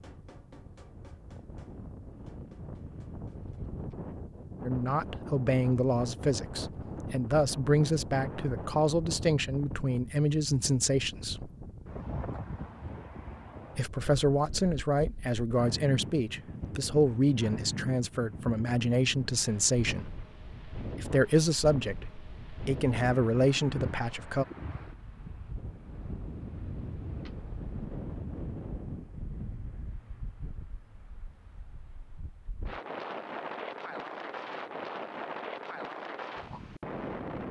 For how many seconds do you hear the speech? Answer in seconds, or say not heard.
17 s.